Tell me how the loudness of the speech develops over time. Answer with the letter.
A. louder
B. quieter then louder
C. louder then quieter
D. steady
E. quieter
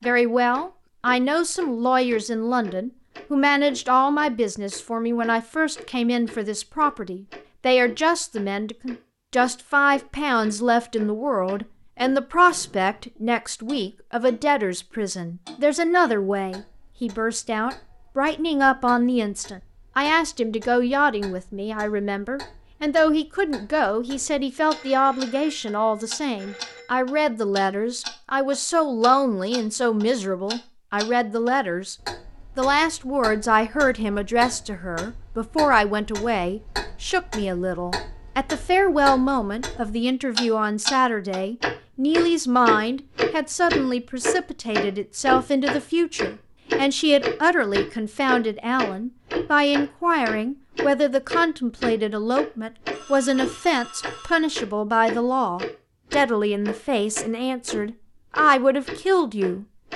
D.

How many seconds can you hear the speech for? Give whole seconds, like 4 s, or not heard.
59 s.